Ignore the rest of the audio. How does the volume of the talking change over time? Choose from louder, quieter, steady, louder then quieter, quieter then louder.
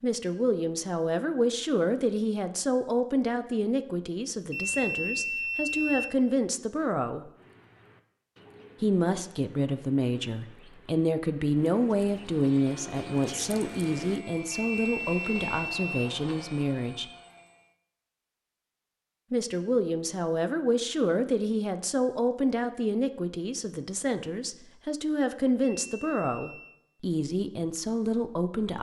steady.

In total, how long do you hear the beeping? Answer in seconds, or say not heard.
4 s.